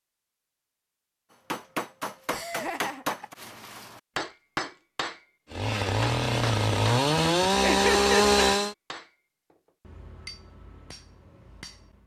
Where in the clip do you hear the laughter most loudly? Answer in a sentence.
The volume of the laughter peaks at 8 seconds.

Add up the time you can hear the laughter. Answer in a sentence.
The laughter can be heard for 2 seconds in total.